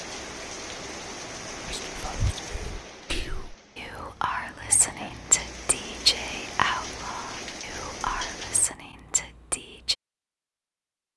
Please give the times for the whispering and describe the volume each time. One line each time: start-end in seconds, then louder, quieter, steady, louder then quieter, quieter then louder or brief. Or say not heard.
1.6-9.9 louder then quieter.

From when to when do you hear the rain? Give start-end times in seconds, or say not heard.
0.0-8.7.